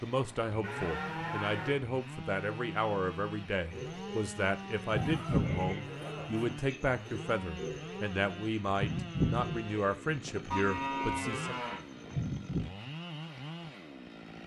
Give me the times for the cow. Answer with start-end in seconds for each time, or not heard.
0.6-1.8, 5.0-6.5, 10.5-11.8.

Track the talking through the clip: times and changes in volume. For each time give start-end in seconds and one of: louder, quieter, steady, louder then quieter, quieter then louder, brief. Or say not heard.
0.0-11.7 steady.